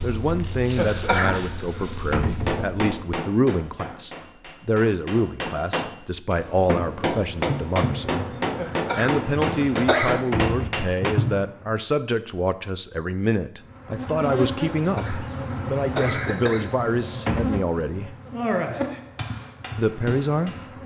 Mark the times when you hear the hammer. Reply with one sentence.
The hammer can be heard from 2.4 to 11.2 s and from 18.7 to 20.7 s.